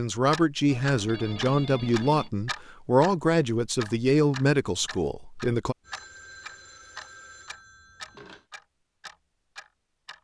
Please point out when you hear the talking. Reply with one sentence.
The talking can be heard from 0.0 to 5.8 s.